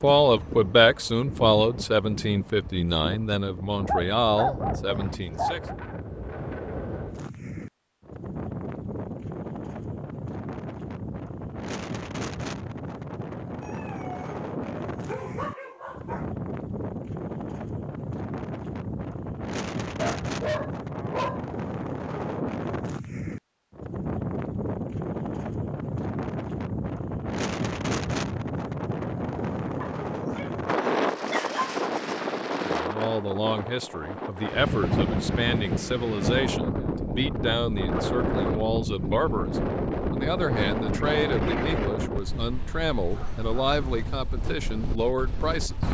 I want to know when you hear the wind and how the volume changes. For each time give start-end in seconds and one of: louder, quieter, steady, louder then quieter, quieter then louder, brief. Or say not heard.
0.0-45.8 louder.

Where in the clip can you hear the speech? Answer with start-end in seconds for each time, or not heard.
0.0-5.6, 32.6-45.8.